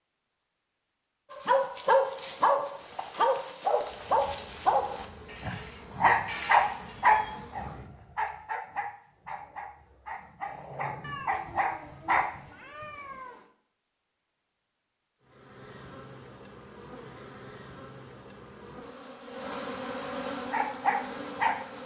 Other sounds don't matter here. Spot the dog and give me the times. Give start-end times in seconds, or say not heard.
1.3-12.2, 20.5-21.6.